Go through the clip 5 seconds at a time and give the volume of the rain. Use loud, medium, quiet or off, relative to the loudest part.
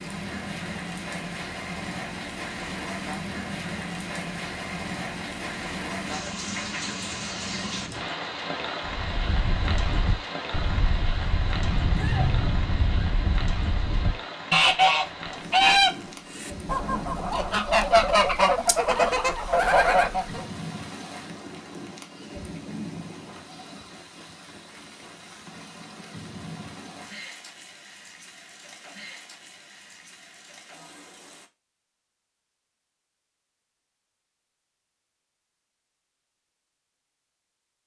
loud, loud, loud, medium, medium, medium, quiet, off.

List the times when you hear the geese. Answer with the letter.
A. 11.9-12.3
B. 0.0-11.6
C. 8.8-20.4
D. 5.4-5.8
C.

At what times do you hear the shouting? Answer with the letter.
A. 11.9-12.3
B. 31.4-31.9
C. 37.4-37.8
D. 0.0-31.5
A.